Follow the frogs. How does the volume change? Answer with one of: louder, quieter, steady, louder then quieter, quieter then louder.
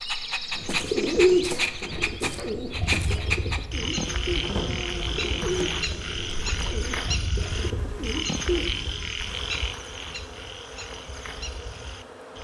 quieter.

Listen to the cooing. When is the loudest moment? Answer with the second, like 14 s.
1 s.